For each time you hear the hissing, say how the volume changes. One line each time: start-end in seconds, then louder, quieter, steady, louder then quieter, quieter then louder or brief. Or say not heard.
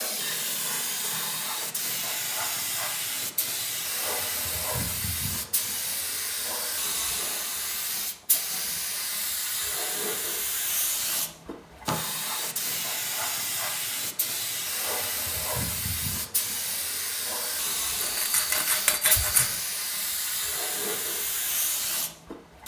0.0-22.6 steady.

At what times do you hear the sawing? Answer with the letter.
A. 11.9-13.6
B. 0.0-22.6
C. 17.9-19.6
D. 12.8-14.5
C.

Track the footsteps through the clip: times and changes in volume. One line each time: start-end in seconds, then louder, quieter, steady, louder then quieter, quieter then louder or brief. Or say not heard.
not heard.